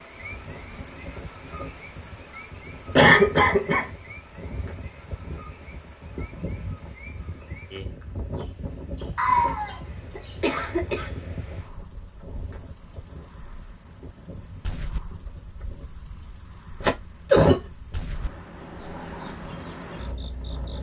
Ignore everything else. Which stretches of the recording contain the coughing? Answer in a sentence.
The coughing can be heard from 3.0 to 3.9 s, from 9.2 to 11.1 s and from 16.8 to 17.6 s.